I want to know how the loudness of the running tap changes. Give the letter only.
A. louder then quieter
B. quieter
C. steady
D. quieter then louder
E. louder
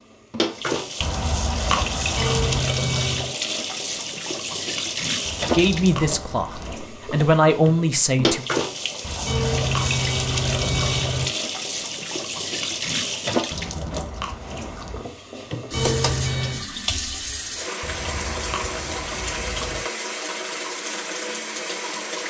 C.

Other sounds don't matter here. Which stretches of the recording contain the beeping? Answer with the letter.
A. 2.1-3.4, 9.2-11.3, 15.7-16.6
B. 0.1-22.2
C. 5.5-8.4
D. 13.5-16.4
A.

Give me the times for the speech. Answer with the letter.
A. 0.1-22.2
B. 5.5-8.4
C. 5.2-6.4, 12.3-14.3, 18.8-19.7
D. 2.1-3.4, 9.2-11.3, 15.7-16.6
B.